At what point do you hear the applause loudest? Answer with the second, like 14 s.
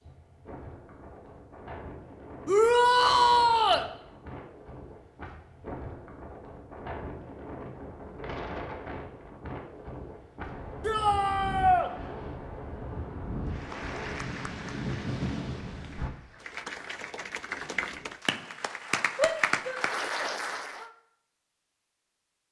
20 s.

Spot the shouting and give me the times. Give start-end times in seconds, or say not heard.
2.5-3.9, 10.8-11.9, 19.1-20.9.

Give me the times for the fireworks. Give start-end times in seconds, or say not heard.
not heard.